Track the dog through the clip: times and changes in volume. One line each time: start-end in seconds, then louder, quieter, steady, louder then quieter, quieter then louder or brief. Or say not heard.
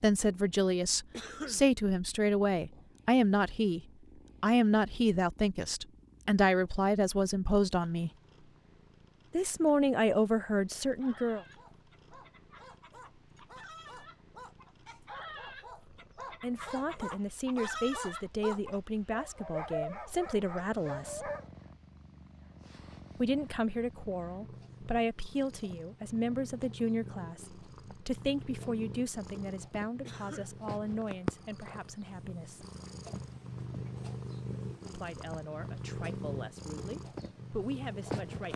10.8-21.5 louder.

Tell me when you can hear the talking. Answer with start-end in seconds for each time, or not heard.
0.0-3.8, 4.4-8.1, 9.3-11.4, 16.4-21.3, 23.1-32.6, 34.9-38.5.